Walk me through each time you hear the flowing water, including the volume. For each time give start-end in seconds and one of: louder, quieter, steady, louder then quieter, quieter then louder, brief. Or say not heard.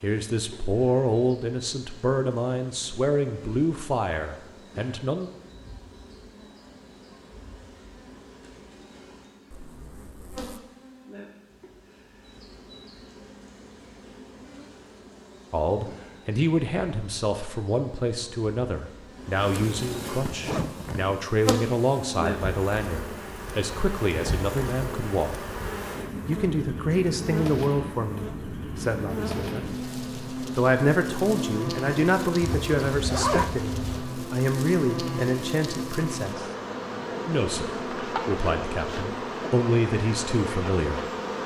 not heard.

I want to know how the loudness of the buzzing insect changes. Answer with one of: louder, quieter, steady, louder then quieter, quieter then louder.
louder.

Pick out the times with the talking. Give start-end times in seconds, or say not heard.
0.0-5.3, 15.5-25.4, 26.2-29.6, 30.4-36.5, 37.2-41.0.